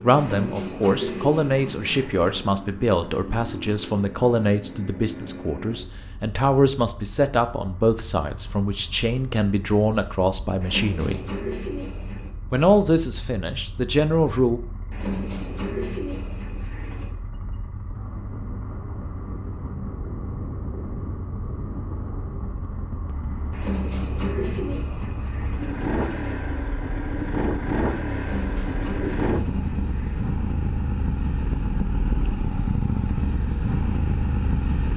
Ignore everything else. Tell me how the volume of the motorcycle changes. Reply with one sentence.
The volume of the motorcycle goes down, then up.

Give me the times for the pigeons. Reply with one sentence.
The pigeons can be heard from 0.1 to 2.5 s, from 10.6 to 12.3 s, from 14.9 to 17.1 s, from 23.5 to 26.4 s and from 28.1 to 30.4 s.